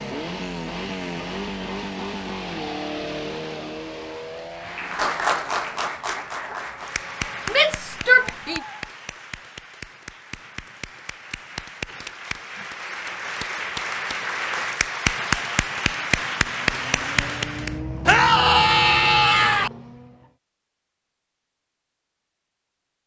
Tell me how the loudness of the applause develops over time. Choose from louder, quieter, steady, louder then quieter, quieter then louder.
quieter then louder.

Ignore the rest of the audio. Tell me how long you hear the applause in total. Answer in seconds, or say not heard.
13 s.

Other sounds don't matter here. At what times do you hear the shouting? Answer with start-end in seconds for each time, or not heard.
7.5-8.6, 18.1-19.7.